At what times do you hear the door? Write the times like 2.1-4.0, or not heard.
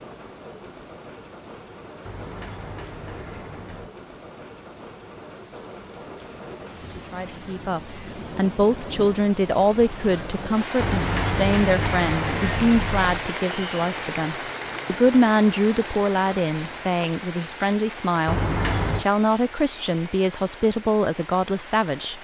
2.0-4.0, 10.8-13.2, 18.2-19.1.